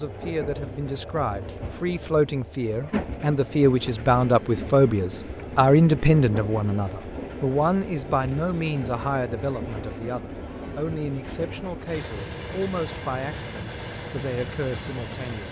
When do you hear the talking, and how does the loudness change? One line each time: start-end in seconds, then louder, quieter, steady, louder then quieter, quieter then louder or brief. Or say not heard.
0.0-15.4 louder then quieter.